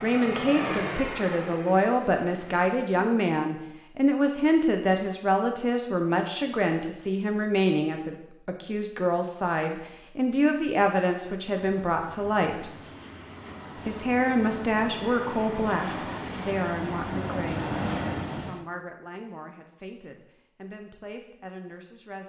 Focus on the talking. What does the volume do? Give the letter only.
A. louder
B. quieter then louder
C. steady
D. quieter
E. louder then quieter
D.